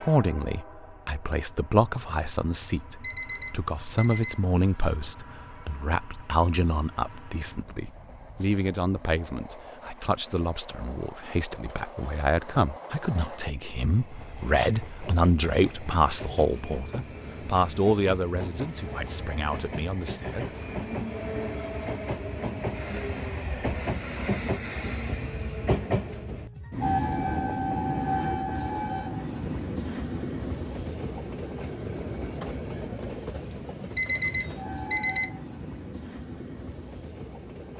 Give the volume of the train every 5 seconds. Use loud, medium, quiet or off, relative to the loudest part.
quiet, quiet, quiet, medium, loud, loud, medium, medium.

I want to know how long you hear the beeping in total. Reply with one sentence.
You can hear the beeping for 3 seconds altogether.